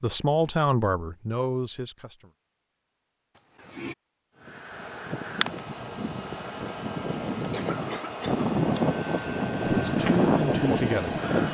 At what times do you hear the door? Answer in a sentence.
The door can't be heard in this clip.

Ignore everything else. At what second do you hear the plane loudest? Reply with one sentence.
The loudest moment of the plane is at 10 seconds.